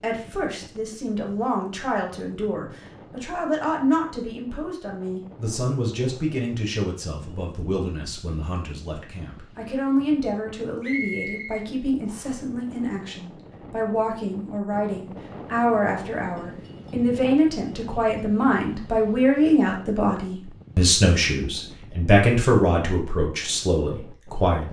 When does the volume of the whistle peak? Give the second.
11 s.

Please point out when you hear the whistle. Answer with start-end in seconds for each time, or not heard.
10.8-12.3.